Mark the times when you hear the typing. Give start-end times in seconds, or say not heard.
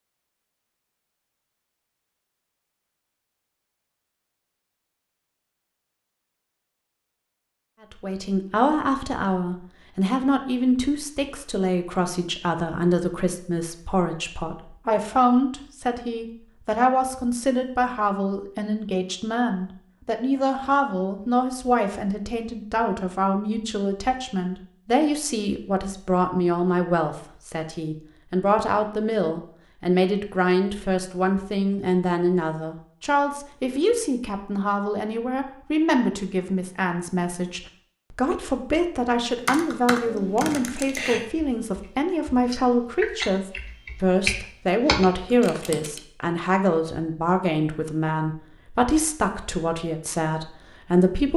39.5-46.0.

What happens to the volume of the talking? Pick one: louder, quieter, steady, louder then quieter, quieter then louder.
steady.